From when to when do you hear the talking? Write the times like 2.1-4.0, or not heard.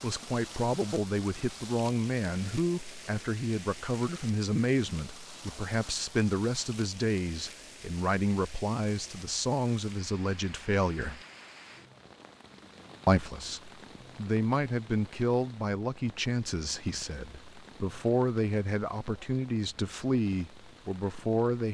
0.0-11.2, 13.1-21.6.